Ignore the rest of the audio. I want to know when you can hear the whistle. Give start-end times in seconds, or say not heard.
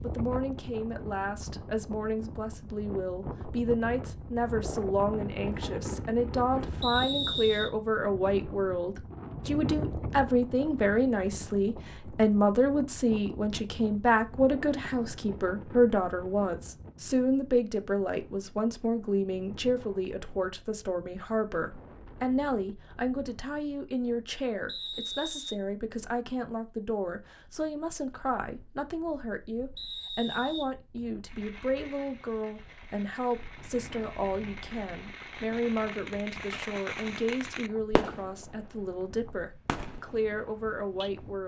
6.8-7.7, 24.6-25.6, 29.8-30.6.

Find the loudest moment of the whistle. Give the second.
7 s.